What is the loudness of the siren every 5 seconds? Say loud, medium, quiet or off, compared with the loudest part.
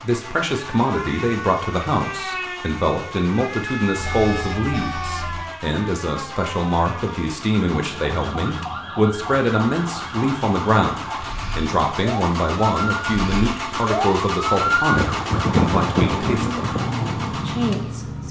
medium, medium, loud, loud.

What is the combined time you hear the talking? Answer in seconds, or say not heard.
18 s.